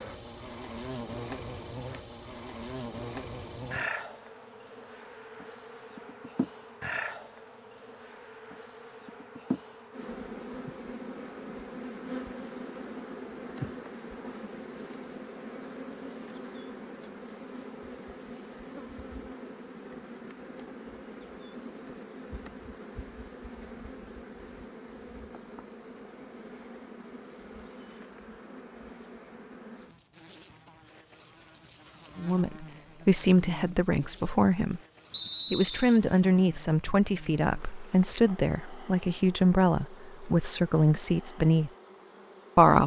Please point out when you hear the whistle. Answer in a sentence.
The whistle can be heard from 35.1 to 36.0 s.